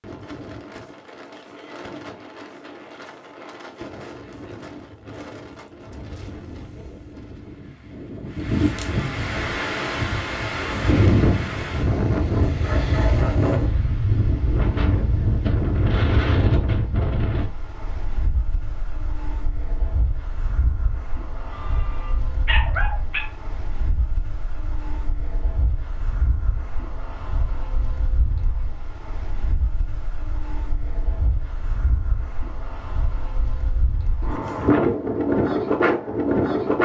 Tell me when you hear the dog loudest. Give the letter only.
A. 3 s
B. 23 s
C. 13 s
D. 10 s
B.